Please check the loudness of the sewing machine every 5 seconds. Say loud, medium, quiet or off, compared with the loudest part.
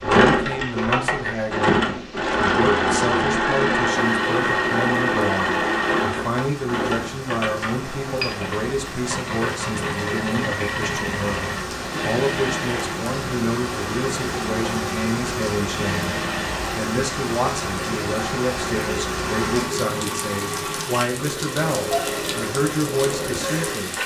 loud, medium, medium, medium, medium.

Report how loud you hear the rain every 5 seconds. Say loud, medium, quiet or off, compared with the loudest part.
quiet, medium, loud, loud, loud.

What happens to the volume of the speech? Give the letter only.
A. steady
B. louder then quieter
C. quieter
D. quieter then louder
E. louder
A.